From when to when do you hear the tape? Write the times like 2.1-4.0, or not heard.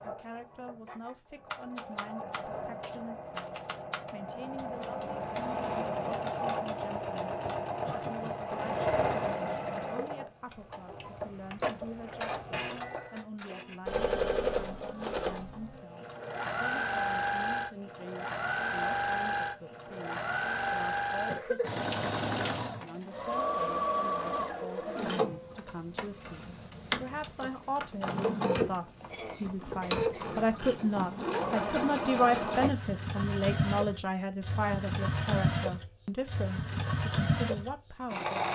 not heard.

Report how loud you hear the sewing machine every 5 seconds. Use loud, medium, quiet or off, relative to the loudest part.
medium, loud, loud, loud, loud, loud, loud, loud.